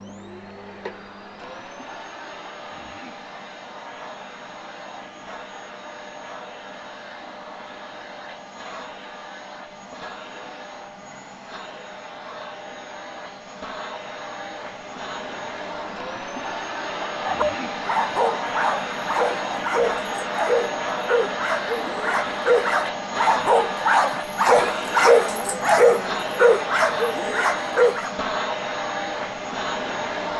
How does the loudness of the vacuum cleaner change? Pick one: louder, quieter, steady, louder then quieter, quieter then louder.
louder.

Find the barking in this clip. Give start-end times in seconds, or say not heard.
17.1-28.1.